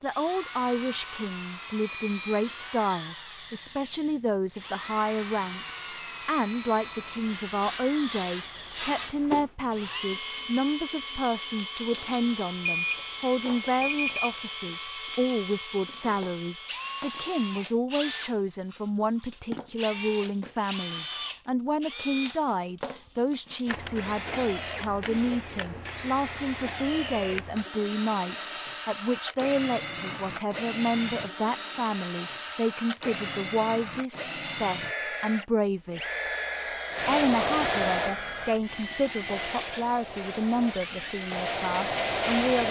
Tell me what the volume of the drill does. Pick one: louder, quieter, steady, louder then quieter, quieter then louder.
steady.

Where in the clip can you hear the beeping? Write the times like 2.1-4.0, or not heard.
11.9-14.4.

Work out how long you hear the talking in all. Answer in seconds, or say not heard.
42 s.